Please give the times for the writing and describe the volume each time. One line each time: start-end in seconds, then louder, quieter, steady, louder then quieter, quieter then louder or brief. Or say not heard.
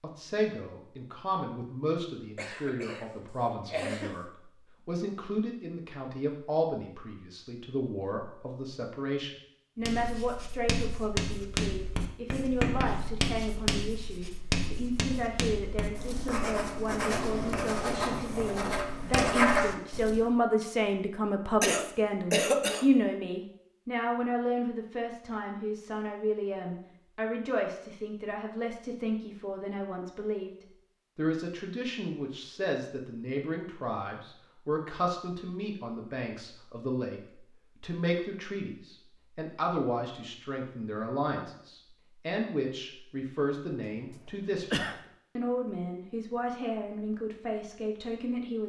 9.8-20.3 louder.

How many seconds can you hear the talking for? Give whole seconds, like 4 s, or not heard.
48 s.